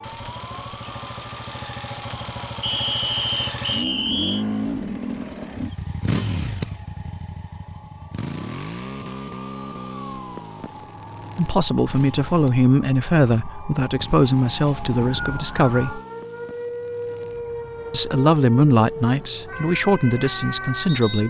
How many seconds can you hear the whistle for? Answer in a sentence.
The whistle can be heard for 3 seconds in total.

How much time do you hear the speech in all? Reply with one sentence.
You can hear the speech for 8 seconds altogether.